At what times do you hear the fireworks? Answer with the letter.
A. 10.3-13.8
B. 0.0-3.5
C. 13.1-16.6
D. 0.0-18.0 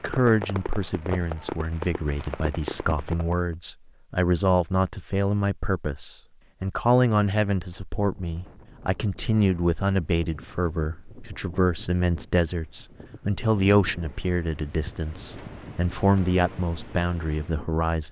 B.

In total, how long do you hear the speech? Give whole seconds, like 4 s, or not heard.
18 s.